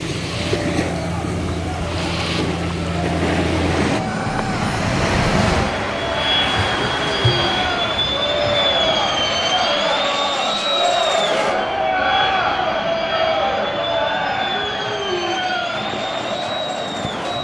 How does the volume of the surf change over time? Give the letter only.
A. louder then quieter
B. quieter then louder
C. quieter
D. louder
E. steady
C.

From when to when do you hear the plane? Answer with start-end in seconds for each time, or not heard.
0.0-17.3.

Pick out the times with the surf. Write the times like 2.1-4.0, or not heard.
0.0-17.3.